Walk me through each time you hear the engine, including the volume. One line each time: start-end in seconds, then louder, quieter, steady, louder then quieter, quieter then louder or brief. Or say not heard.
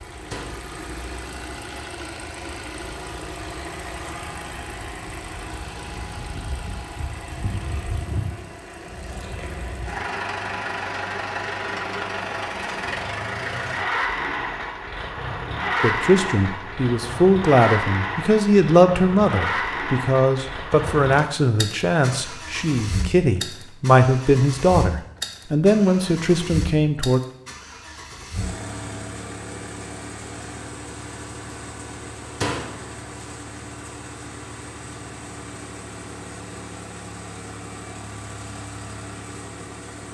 0.0-40.0 louder then quieter.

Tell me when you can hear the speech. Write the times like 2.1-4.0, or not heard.
15.8-27.2.